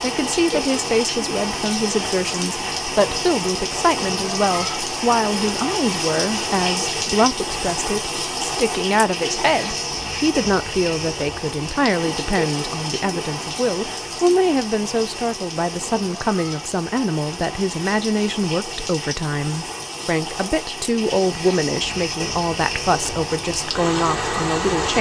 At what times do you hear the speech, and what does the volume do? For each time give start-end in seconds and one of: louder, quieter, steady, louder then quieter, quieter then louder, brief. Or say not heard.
0.0-24.9 steady.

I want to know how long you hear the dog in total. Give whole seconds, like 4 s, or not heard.
not heard.